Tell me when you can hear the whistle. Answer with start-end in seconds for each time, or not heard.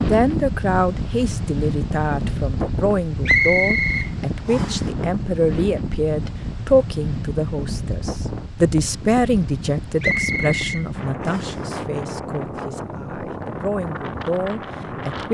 3.2-4.8, 10.0-11.6.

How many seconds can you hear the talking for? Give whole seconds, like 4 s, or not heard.
15 s.